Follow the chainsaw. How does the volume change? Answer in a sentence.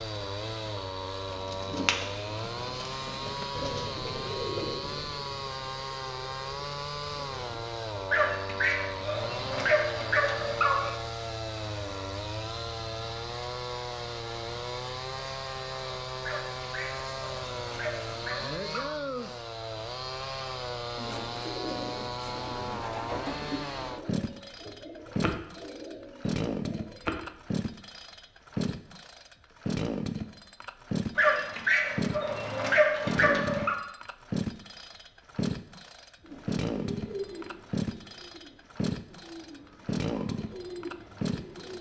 The volume of the chainsaw stays about the same.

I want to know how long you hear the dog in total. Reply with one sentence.
The dog can be heard for 8 seconds in total.